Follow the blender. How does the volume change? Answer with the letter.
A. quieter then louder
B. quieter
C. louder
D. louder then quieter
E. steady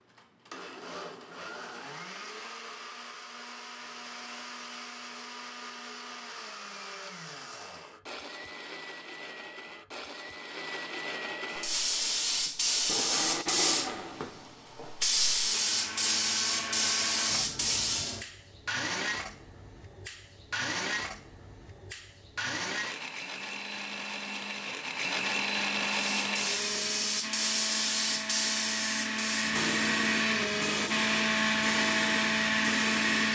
C.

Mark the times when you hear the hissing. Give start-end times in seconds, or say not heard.
11.5-18.2, 25.9-33.3.